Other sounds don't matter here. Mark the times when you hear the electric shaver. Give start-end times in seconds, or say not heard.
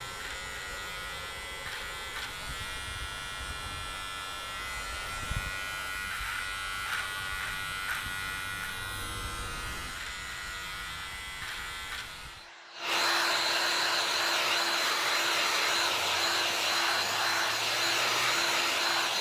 0.0-12.5.